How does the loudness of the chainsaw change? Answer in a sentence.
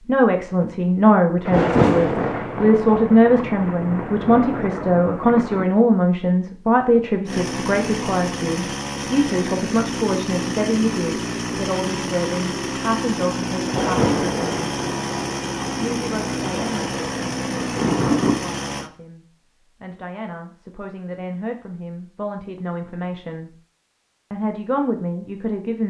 The loudness of the chainsaw stays about the same.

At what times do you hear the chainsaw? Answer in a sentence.
The chainsaw can be heard from 7.2 to 18.9 s.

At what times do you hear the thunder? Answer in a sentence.
You can hear the thunder from 1.4 to 5.7 s and from 13.7 to 18.4 s.